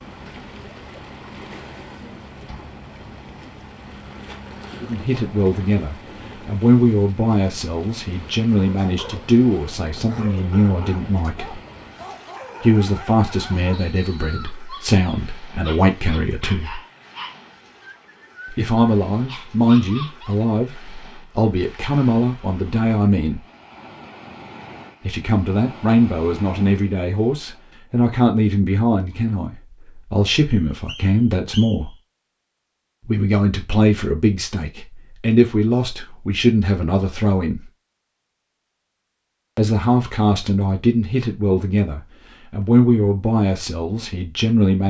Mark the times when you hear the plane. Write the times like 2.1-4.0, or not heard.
not heard.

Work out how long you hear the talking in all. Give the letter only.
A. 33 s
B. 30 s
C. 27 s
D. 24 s
A.